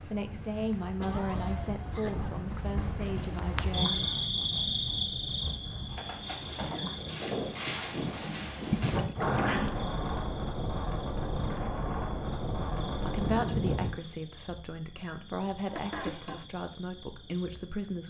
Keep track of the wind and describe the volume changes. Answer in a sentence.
The volume of the wind goes up.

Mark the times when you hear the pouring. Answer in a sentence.
You can hear the pouring from 8.7 to 9.7 s.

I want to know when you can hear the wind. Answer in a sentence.
The wind can be heard from 0.0 to 13.9 s.